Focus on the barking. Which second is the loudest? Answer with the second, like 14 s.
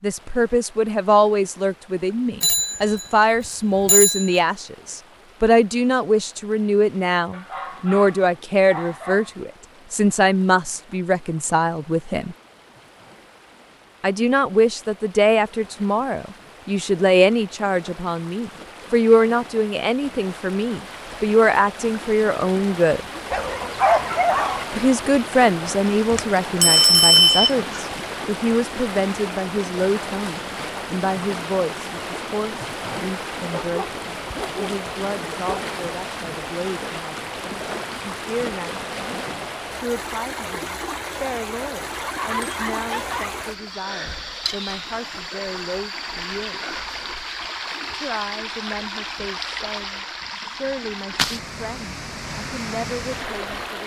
24 s.